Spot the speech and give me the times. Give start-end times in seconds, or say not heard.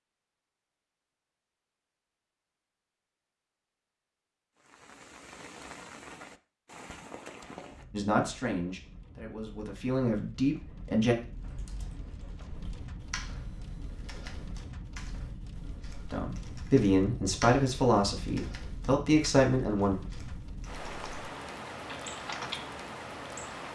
7.9-11.2, 16.1-19.9.